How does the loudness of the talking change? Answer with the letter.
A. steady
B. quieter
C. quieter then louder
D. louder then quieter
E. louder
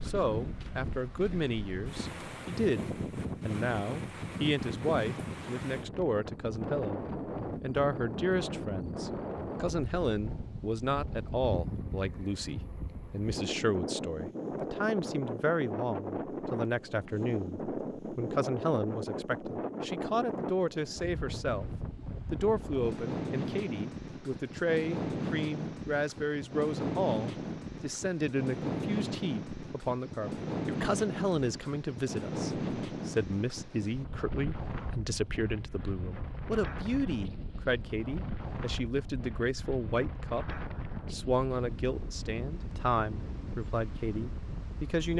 A.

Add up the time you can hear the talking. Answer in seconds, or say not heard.
45 s.